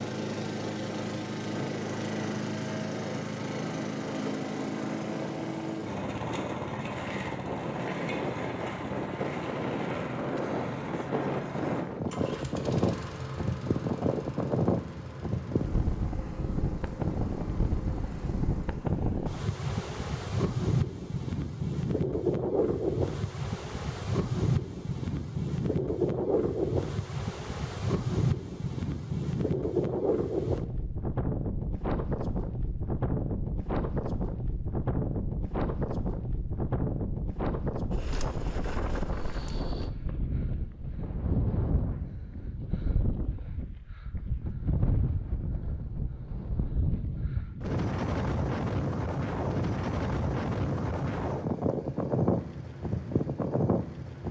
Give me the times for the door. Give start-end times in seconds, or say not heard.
not heard.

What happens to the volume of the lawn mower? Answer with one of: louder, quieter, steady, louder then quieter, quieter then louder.
quieter.